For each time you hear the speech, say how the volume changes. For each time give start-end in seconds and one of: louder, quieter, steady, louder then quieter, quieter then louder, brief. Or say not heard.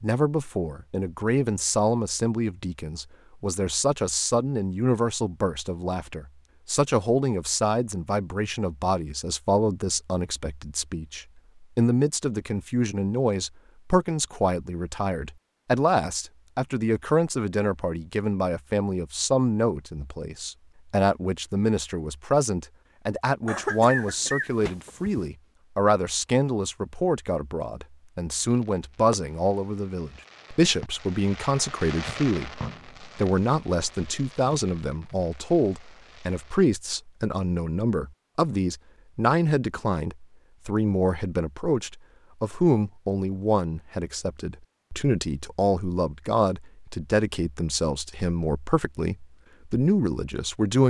0.0-50.8 steady.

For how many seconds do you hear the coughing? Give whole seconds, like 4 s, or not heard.
2 s.